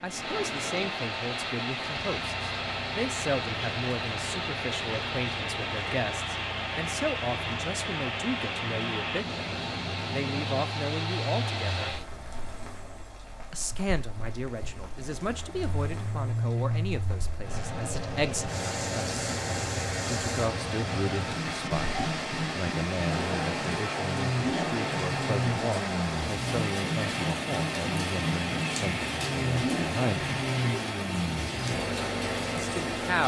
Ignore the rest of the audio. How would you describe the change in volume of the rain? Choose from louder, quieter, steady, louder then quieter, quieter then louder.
quieter then louder.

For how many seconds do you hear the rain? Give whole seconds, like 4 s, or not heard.
33 s.